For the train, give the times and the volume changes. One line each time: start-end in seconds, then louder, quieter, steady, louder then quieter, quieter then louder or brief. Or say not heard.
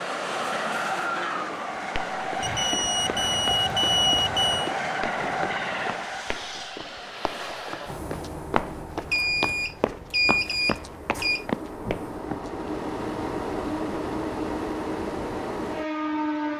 0.0-16.5 quieter then louder.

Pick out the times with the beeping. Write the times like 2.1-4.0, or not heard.
2.4-4.7, 9.1-11.4.